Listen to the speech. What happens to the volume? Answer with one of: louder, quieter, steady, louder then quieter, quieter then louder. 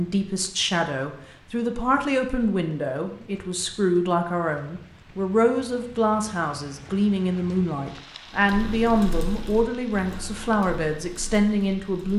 steady.